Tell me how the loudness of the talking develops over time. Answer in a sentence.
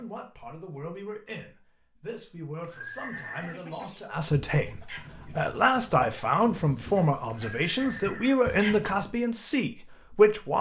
The volume of the talking goes up.